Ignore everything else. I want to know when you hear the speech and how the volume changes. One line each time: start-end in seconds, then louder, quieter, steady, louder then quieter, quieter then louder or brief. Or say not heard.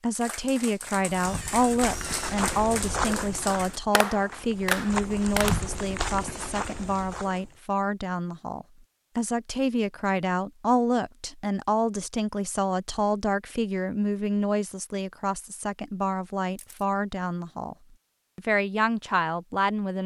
0.0-17.8 steady
18.4-20.0 brief.